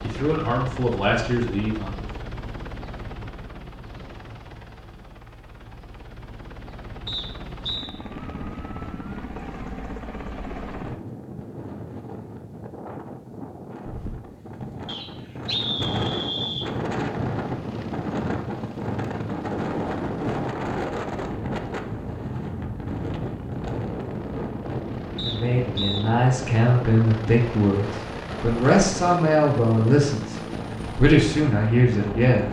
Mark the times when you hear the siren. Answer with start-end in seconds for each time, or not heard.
not heard.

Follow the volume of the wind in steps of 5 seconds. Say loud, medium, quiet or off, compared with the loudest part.
off, off, medium, loud, loud, medium, medium.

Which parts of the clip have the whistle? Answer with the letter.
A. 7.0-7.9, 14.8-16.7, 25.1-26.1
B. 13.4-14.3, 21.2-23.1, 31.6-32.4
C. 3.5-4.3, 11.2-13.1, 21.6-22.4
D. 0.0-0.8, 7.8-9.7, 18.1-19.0
A.